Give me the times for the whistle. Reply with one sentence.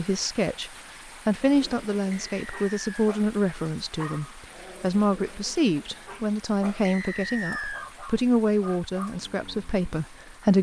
You can hear the whistle from 2.1 to 3.1 s and from 6.8 to 7.8 s.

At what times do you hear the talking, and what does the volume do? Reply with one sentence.
You can hear the talking from 0.0 to 10.5 s, at a steady volume.